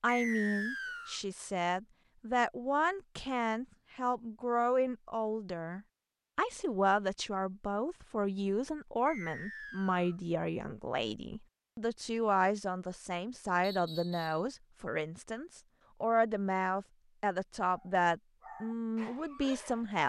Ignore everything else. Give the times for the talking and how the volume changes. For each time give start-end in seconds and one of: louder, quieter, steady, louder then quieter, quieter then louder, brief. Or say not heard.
0.0-20.0 steady.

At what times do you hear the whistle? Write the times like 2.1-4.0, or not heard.
0.1-1.2, 9.1-10.2, 13.6-14.4.